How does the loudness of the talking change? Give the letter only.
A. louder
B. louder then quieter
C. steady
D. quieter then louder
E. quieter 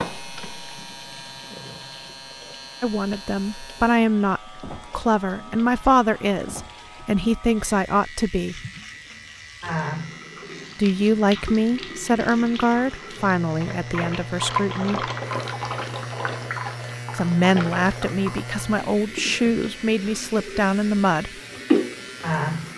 C.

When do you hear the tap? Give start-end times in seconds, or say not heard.
0.0-22.7.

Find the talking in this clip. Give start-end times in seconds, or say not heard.
2.8-8.6, 10.8-15.1, 17.1-21.4.